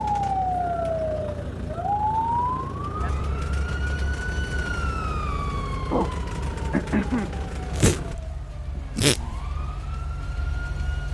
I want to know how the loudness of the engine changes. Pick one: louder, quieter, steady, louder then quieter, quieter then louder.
steady.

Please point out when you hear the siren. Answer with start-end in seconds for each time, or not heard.
0.0-11.0.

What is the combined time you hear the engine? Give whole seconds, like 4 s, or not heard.
8 s.